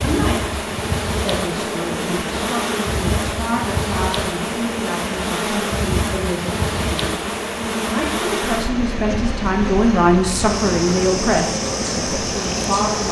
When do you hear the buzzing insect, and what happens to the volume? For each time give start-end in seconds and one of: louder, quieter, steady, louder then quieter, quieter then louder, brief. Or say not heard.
0.0-13.0 steady.